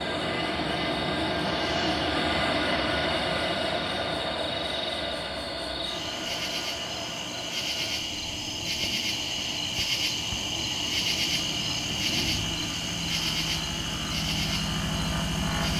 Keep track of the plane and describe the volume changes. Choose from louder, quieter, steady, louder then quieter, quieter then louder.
quieter then louder.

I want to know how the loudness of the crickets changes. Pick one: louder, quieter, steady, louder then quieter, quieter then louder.
louder.